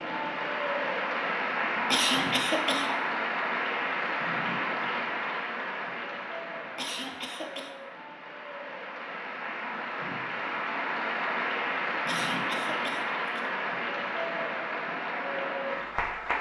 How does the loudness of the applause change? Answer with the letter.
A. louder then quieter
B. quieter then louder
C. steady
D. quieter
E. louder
B.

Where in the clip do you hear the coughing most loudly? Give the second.
2 s.